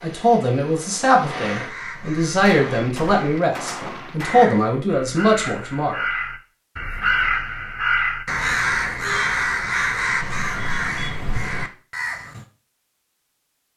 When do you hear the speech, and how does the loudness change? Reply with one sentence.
You can hear the speech from 0.0 to 6.0 s, at a steady volume.